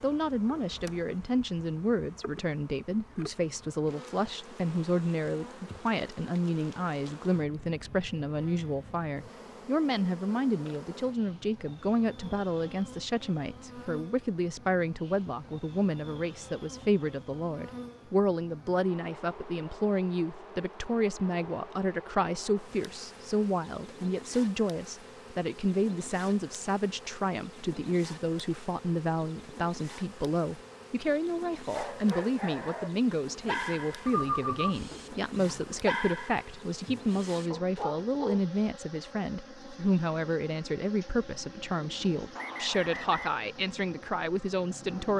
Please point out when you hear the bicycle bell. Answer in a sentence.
You can't hear the bicycle bell here.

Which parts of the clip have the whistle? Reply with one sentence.
You can hear the whistle from 42.4 to 43.4 s.